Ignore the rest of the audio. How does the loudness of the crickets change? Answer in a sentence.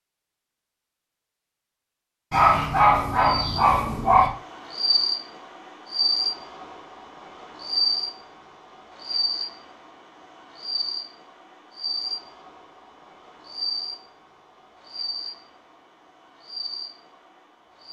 The volume of the crickets goes down.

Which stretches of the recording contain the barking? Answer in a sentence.
You can hear the barking from 2.3 to 4.3 s.